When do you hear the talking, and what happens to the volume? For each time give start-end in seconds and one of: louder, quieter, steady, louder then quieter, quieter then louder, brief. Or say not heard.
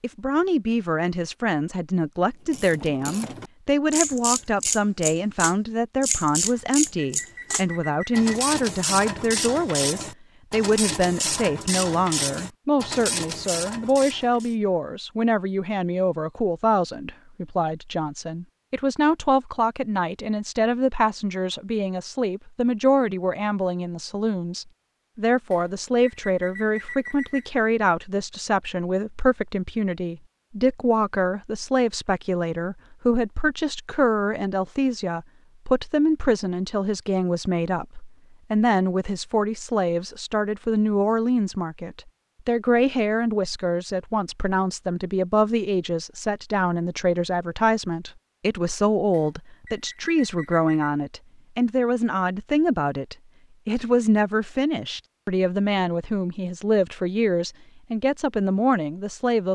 0.0-59.4 steady.